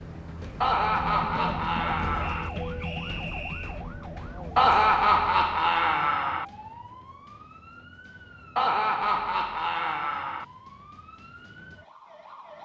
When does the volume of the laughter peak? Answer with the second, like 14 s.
5 s.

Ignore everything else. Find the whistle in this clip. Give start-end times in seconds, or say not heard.
2.1-3.9.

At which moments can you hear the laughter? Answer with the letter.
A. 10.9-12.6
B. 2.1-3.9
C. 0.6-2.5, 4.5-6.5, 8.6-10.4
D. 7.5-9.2
C.